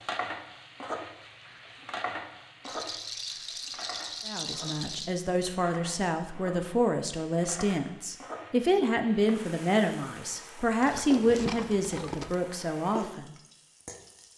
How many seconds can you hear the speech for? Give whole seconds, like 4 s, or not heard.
9 s.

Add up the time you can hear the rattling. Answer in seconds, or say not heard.
4 s.